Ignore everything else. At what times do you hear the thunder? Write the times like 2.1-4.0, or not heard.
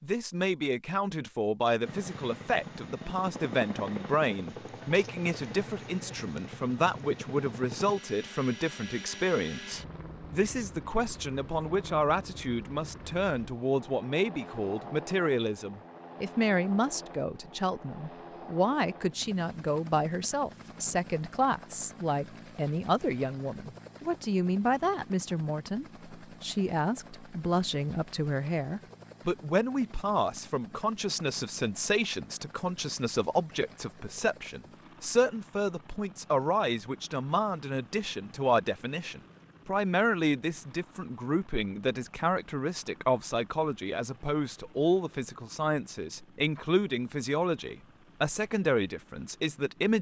not heard.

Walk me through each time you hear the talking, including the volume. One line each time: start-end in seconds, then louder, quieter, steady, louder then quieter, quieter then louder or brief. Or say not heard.
0.0-49.9 steady.